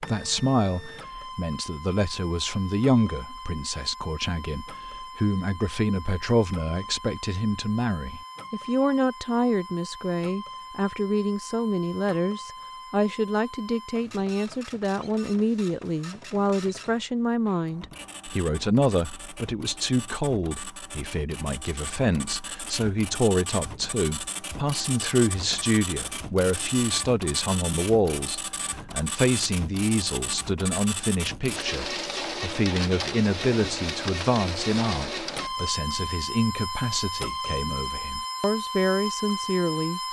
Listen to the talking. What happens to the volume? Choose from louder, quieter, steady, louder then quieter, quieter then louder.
steady.